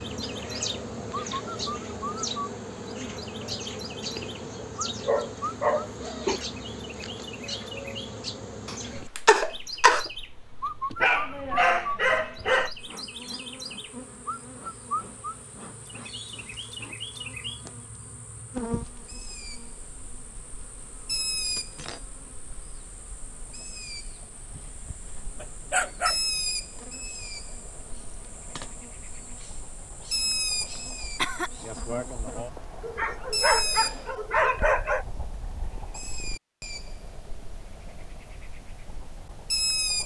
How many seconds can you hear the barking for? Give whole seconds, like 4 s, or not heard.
7 s.